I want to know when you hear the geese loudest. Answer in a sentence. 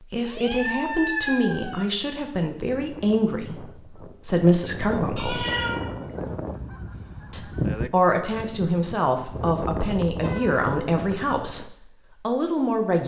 The volume of the geese peaks at 8 seconds.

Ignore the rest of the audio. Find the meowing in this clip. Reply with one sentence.
The meowing can be heard from 0.2 to 1.9 s, from 5.2 to 6.3 s and from 10.2 to 10.7 s.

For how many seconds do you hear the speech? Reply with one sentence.
You can hear the speech for 11 seconds altogether.